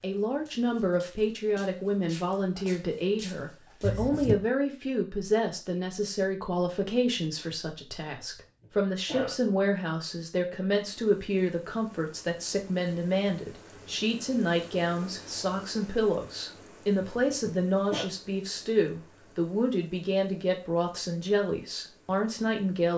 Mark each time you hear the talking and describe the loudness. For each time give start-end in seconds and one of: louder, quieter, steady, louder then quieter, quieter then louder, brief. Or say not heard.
0.0-22.9 steady.